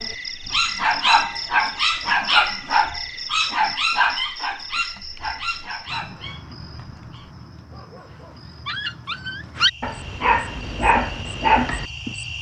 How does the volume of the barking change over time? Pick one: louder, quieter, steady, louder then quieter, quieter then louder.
quieter then louder.